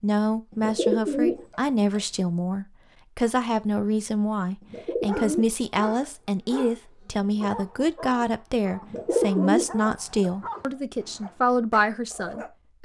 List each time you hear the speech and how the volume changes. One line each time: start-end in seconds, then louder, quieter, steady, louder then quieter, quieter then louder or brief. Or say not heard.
0.0-12.7 steady.